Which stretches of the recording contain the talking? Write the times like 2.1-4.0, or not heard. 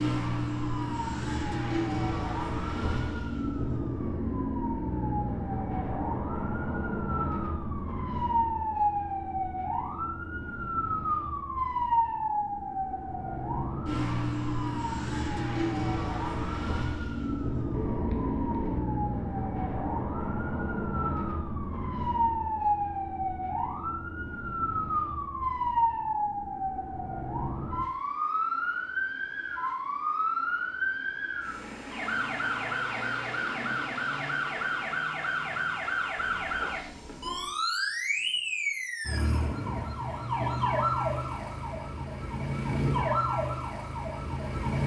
not heard.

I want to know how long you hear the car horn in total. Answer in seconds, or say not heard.
3 s.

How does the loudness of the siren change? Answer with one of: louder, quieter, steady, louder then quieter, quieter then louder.
steady.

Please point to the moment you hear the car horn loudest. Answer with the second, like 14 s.
18 s.